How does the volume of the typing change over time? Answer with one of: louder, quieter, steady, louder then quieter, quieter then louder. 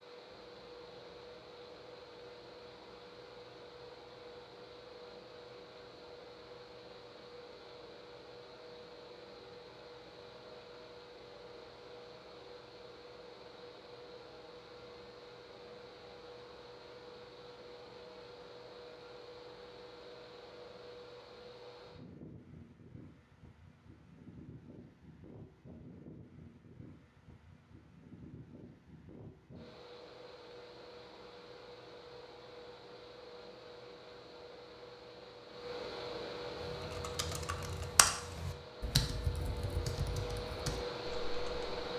louder then quieter.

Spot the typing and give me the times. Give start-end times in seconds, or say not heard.
36.5-41.7.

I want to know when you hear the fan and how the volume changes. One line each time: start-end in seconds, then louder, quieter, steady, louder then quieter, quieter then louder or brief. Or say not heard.
0.0-41.9 louder.